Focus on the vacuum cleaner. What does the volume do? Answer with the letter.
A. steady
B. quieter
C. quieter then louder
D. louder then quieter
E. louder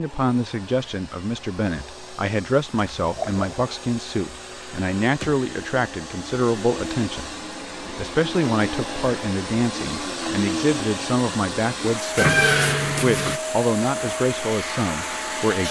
E.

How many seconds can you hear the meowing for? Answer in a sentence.
The meowing can be heard for 2 seconds in total.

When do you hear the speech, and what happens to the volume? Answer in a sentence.
You can hear the speech from 0.0 to 15.6 s, at a steady volume.